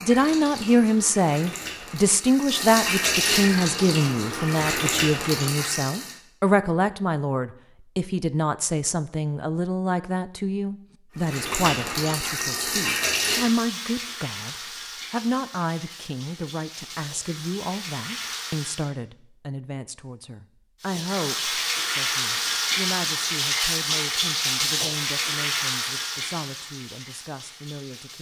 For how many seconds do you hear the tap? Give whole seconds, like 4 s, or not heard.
21 s.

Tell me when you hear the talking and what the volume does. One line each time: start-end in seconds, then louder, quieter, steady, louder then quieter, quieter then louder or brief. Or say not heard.
0.0-28.1 quieter.